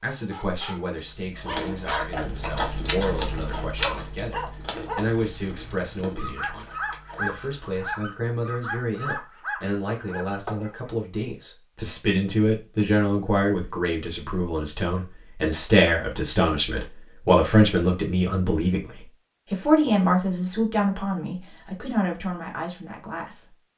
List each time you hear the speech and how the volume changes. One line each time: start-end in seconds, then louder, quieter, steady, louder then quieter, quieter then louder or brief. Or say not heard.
0.0-23.6 louder.